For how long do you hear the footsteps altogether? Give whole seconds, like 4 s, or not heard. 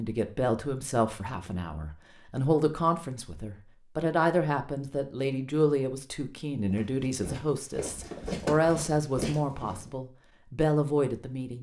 3 s.